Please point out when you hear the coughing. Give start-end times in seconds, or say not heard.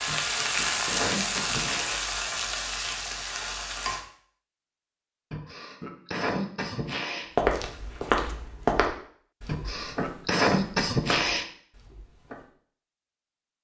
0.1-2.0, 5.3-7.3, 9.4-11.4.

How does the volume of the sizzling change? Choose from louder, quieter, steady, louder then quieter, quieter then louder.
quieter.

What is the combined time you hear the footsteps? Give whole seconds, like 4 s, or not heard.
5 s.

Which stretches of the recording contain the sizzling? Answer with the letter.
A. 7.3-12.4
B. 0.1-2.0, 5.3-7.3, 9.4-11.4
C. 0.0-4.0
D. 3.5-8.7
C.